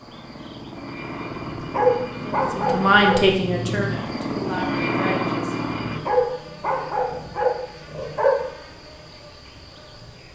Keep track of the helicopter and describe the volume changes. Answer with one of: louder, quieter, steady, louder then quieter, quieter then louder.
louder.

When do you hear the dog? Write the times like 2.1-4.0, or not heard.
1.3-3.2, 5.8-8.4.